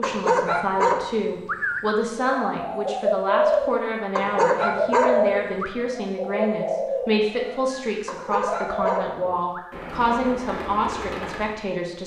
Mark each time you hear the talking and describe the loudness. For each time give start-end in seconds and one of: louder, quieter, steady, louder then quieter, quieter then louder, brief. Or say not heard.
0.0-12.0 steady.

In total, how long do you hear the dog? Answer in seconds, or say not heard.
5 s.